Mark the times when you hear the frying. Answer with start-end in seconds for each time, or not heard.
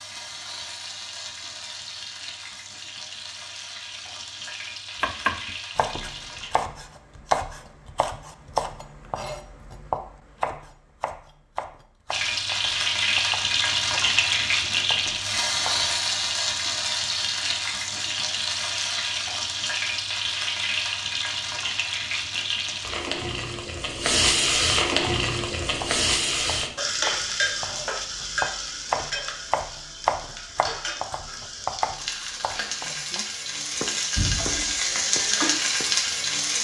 0.0-6.5, 12.1-36.5.